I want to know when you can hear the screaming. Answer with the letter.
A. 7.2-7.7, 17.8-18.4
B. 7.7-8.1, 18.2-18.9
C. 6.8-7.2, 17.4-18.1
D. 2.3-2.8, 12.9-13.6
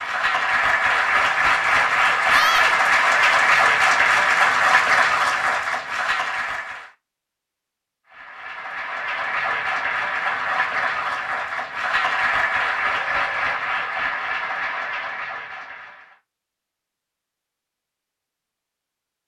D.